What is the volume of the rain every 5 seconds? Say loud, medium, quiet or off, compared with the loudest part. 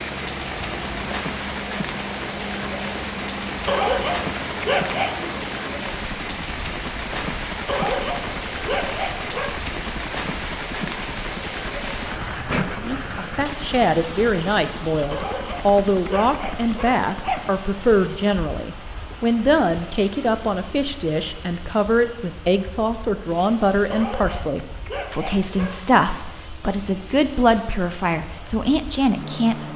loud, loud, loud, medium, quiet, quiet.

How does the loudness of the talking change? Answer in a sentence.
The volume of the talking stays about the same.